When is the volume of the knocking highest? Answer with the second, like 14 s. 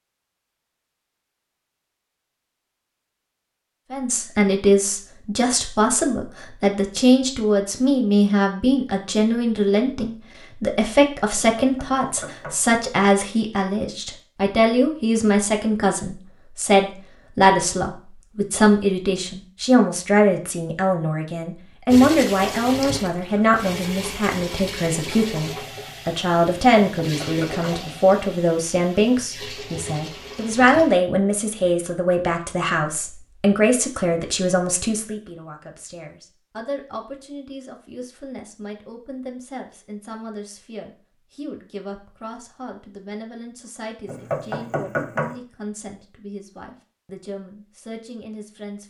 45 s.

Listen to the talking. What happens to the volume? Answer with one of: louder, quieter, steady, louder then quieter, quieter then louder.
quieter.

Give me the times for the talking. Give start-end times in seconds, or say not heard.
3.9-48.8.